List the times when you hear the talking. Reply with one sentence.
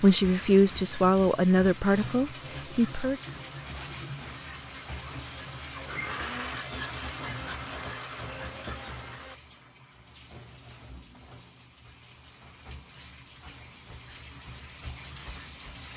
You can hear the talking from 0.0 to 3.2 s.